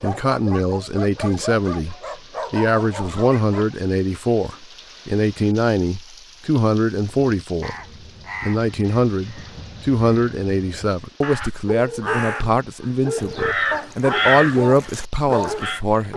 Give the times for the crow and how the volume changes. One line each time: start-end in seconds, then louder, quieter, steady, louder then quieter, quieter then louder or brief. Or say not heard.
7.0-15.8 quieter then louder.